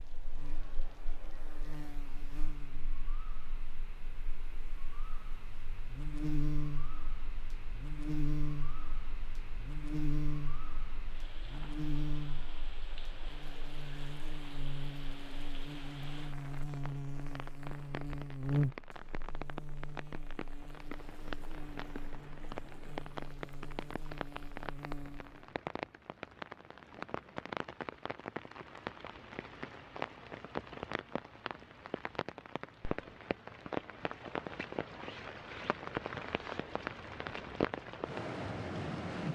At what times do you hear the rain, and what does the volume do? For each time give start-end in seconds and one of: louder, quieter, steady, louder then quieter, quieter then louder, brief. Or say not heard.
0.0-39.3 louder.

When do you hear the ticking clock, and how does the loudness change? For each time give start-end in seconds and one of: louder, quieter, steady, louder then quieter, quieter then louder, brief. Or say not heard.
not heard.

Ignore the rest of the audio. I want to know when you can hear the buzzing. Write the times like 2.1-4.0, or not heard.
0.0-25.5.